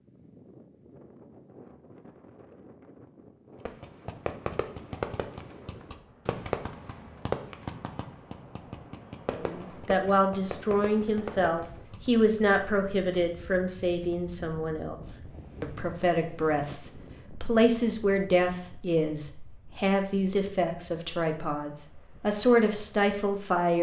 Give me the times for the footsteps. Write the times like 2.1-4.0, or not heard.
not heard.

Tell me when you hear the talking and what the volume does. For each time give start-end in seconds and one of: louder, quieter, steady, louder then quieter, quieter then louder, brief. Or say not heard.
9.3-23.7 steady.